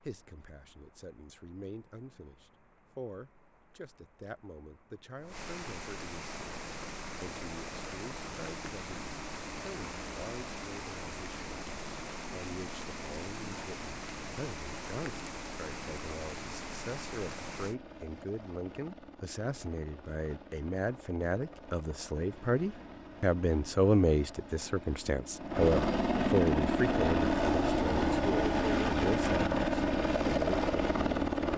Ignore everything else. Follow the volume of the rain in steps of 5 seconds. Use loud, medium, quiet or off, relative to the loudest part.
quiet, loud, loud, loud, off, off, off.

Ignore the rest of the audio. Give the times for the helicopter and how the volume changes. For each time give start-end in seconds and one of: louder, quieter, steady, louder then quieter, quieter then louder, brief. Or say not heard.
6.5-31.5 louder.